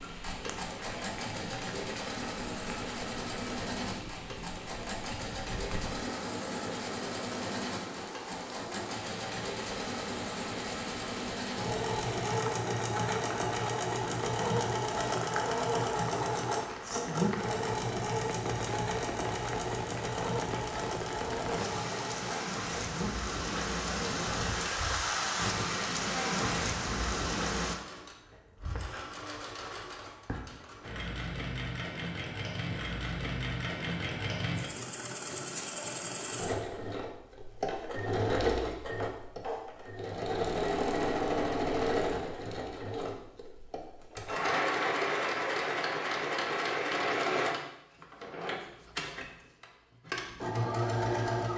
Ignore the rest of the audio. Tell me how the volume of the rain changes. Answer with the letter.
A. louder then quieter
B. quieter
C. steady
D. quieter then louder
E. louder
E.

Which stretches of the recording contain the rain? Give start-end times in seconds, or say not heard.
0.0-27.8.